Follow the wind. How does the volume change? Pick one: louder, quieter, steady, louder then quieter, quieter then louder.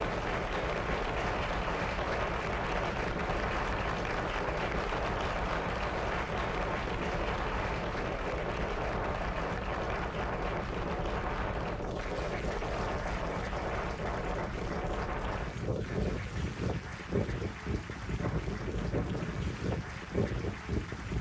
steady.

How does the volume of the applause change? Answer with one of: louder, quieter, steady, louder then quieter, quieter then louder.
quieter.